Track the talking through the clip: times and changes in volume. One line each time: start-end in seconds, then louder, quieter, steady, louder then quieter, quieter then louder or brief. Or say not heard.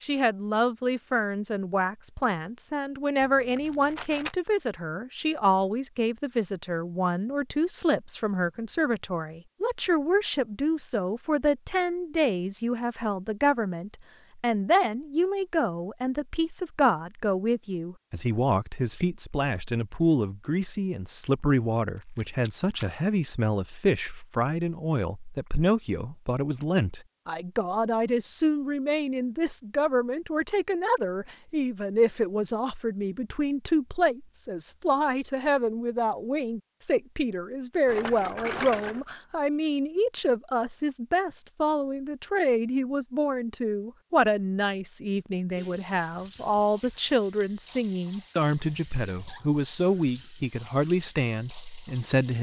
0.0-52.3 steady.